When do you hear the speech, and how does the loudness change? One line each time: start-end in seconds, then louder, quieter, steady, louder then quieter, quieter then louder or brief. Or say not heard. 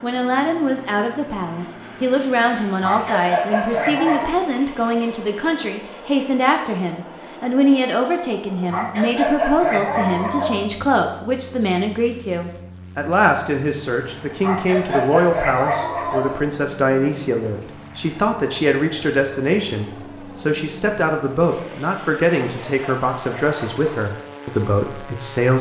0.0-25.5 steady.